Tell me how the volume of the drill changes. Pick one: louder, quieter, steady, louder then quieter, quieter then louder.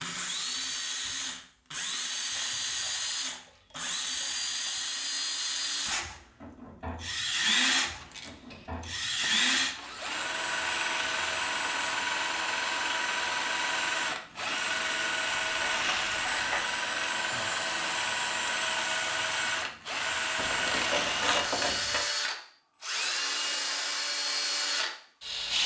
steady.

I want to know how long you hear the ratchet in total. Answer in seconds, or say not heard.
8 s.